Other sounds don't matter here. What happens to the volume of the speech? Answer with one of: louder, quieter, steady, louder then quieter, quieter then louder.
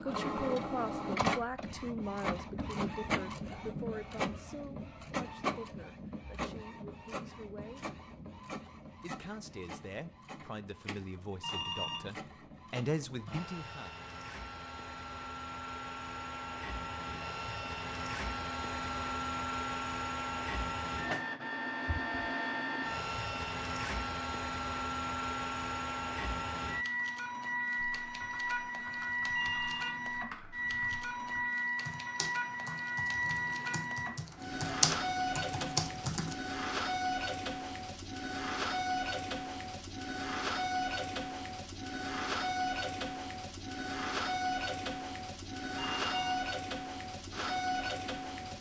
quieter then louder.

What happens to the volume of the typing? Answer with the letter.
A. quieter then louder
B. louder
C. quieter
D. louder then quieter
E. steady
B.